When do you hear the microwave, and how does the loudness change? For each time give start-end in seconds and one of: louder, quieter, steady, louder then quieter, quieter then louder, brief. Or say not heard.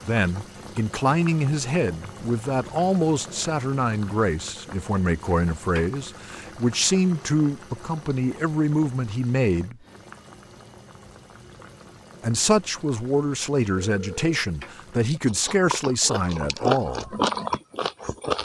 not heard.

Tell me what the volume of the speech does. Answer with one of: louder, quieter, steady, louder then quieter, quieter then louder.
steady.